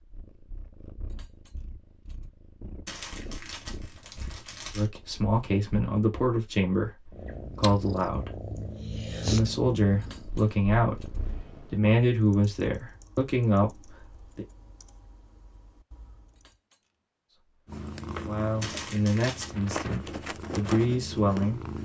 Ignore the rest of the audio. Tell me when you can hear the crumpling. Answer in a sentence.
You can hear the crumpling from 2.9 to 4.9 s and from 18.6 to 19.6 s.